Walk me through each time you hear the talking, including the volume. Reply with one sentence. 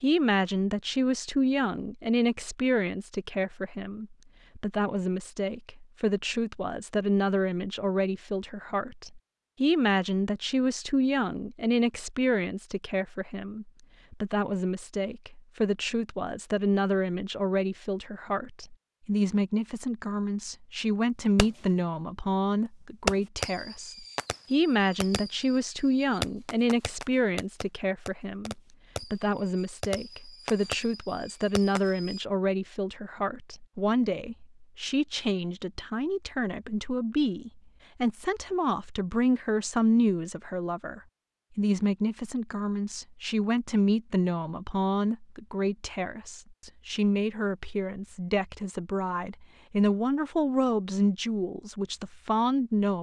The talking can be heard from 0.0 to 52.9 s, at a steady volume.